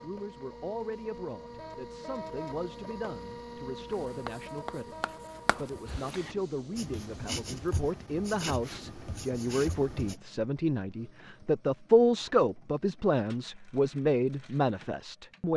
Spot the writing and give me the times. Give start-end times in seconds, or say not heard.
3.9-10.2.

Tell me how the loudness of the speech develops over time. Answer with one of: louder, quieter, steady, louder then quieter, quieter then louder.
louder.